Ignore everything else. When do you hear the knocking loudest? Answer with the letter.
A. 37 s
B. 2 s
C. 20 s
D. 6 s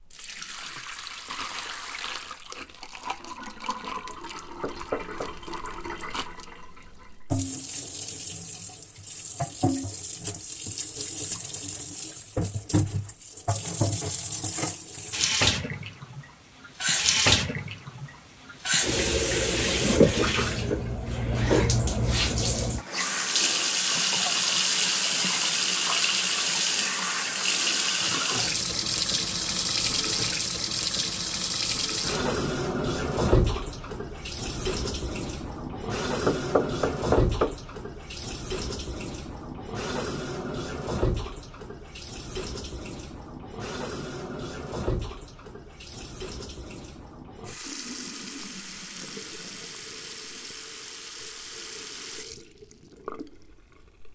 A.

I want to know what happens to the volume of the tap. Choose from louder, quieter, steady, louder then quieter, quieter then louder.
louder then quieter.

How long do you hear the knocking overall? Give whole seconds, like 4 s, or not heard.
2 s.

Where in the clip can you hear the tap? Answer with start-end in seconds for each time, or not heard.
0.0-54.1.